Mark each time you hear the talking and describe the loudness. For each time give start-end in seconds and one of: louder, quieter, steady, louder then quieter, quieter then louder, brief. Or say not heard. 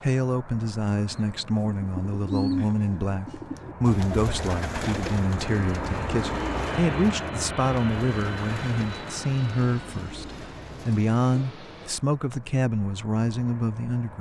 0.0-14.1 steady.